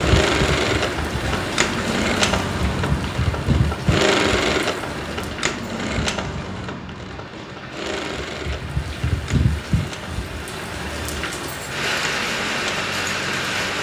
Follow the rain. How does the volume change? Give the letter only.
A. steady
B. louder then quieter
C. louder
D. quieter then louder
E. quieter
D.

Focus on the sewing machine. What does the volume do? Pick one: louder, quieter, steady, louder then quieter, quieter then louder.
quieter.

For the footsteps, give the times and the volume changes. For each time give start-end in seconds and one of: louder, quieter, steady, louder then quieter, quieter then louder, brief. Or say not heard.
not heard.